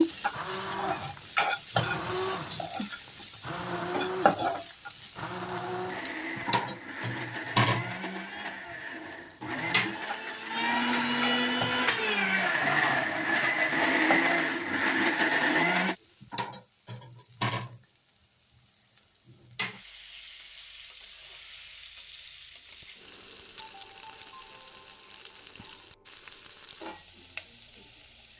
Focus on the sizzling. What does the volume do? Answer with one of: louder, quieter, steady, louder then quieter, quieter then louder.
quieter.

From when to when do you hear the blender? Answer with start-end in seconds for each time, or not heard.
0.0-15.9.